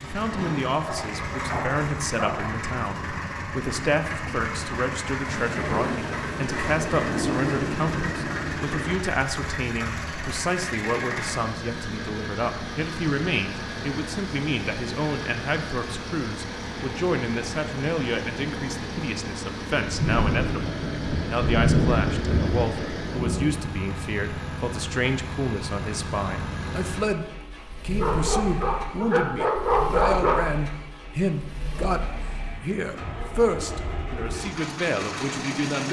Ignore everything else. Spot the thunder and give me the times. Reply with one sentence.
You can hear the thunder from 5.3 to 8.9 s and from 19.9 to 23.6 s.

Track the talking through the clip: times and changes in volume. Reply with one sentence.
You can hear the talking from 0.0 to 35.8 s, at a steady volume.